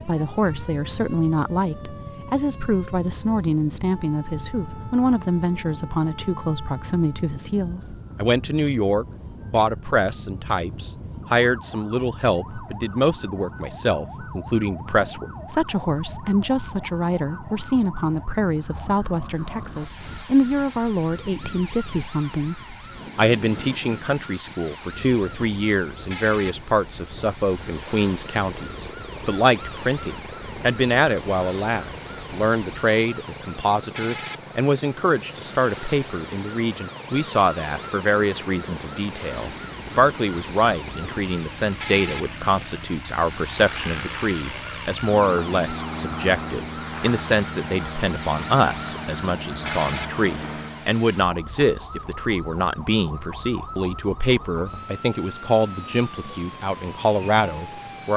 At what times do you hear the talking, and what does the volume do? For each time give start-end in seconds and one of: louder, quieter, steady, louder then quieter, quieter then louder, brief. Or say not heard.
0.1-58.1 steady.